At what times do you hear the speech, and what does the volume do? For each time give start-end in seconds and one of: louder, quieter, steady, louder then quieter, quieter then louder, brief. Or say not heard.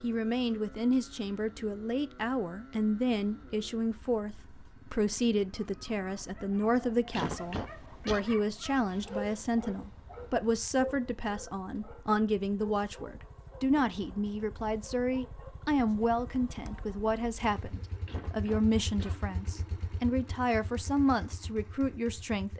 0.0-22.5 steady.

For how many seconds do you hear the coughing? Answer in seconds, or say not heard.
2 s.